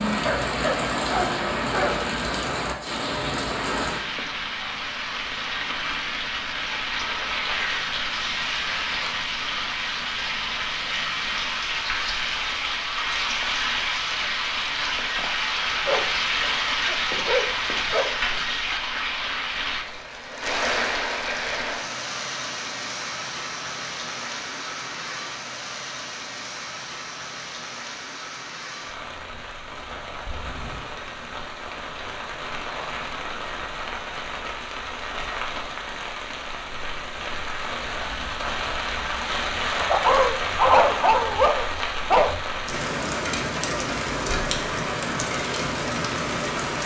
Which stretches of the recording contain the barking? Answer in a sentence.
You can hear the barking from 0.1 to 2.0 s, from 15.8 to 18.5 s and from 39.8 to 42.4 s.